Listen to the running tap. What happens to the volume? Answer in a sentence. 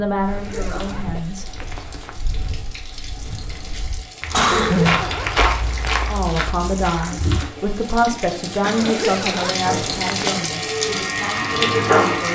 The volume of the running tap goes up.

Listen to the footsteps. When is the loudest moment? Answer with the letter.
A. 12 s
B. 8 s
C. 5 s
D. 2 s
C.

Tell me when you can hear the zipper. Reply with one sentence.
You can hear the zipper from 0.2 to 2.1 s, from 4.5 to 6.2 s and from 8.8 to 10.5 s.